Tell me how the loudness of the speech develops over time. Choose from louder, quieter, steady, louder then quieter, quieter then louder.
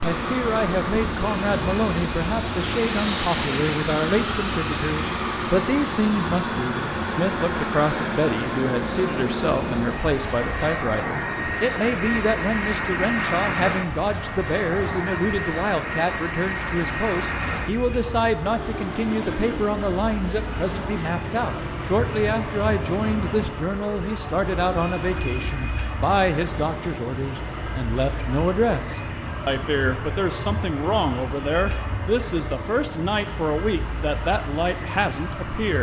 steady.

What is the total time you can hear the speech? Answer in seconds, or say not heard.
36 s.